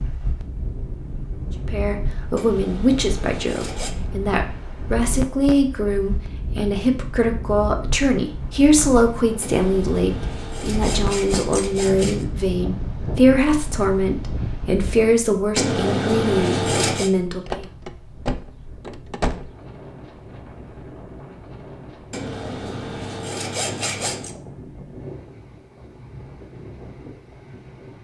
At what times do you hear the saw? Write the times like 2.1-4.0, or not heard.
2.4-4.0, 9.4-12.2, 15.6-17.1, 22.1-24.4.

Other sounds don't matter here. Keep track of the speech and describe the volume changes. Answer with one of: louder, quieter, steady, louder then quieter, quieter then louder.
steady.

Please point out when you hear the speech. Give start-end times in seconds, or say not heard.
1.6-17.6.